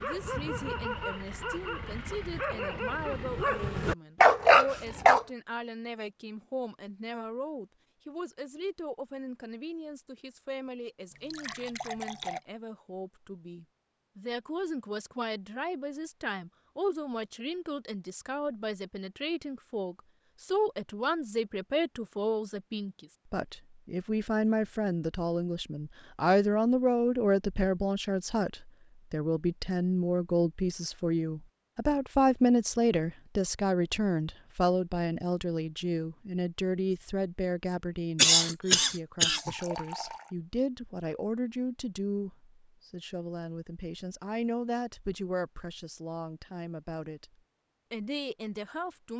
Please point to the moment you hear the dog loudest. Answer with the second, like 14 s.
4 s.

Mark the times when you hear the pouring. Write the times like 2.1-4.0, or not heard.
11.1-12.4, 39.4-40.3.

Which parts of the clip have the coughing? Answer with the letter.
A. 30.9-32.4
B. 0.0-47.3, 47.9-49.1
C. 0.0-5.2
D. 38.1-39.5
D.